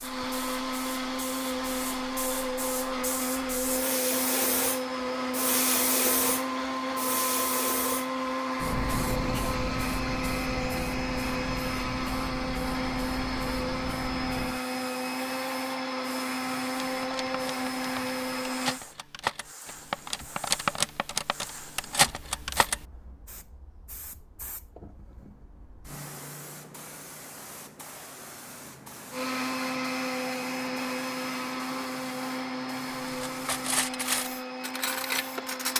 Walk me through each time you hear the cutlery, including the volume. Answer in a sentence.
The cutlery can be heard from 16.9 to 22.8 s, getting louder; and briefly from 33.2 to 35.7 s.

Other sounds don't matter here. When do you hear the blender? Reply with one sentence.
The blender can be heard from 0.0 to 18.8 s and from 29.1 to 35.7 s.